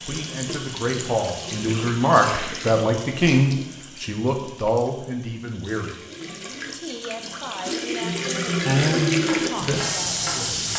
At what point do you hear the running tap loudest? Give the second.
9 s.